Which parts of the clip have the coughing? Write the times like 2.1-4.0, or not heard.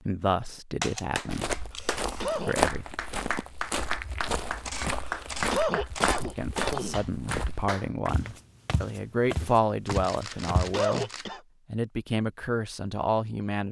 1.8-2.5, 5.0-7.0, 10.2-11.4.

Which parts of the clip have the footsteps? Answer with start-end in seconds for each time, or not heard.
1.2-10.8.